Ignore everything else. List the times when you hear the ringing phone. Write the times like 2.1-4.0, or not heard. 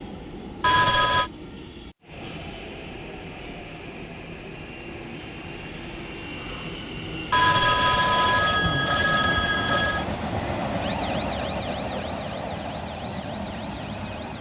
0.6-1.3, 7.3-10.1.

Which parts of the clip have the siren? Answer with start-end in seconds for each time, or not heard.
10.8-14.3.